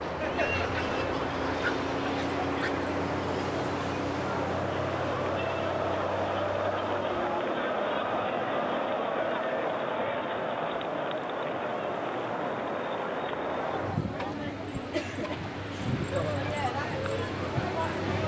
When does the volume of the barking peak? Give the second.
2 s.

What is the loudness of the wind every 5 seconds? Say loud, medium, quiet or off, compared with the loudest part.
loud, medium, loud, medium.